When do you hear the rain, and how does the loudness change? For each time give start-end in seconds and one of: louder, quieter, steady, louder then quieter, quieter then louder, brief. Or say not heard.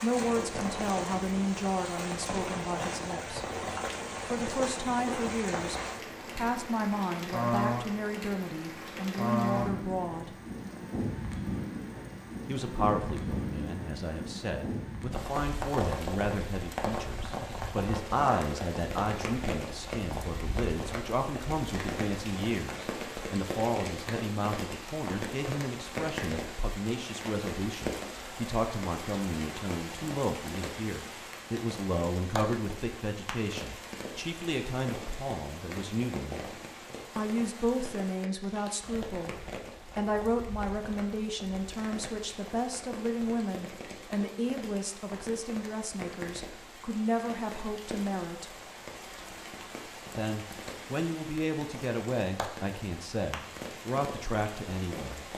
0.0-55.3 quieter.